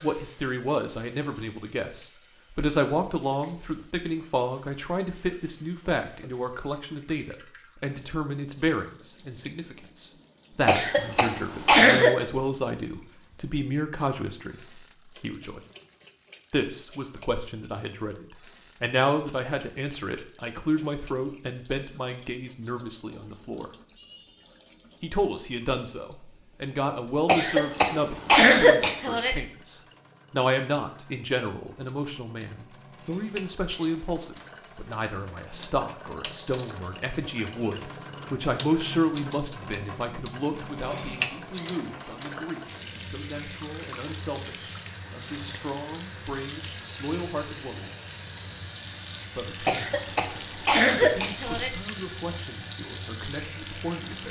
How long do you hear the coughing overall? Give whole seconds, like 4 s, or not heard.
6 s.